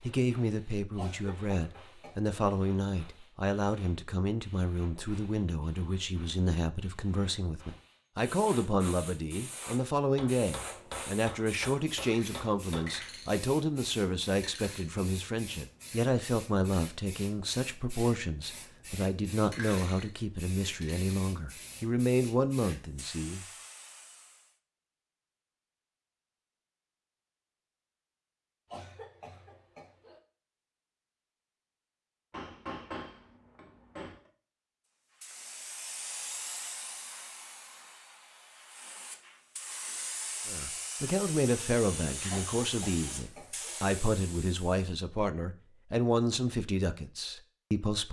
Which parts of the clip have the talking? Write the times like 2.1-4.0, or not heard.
0.0-23.4, 40.5-48.0.